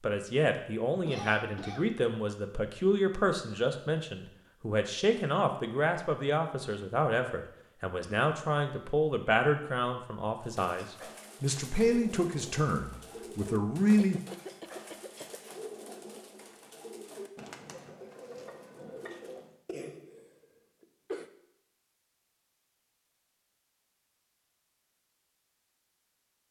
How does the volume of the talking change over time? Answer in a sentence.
The volume of the talking stays about the same.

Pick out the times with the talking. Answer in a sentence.
The talking can be heard from 0.0 to 14.2 s.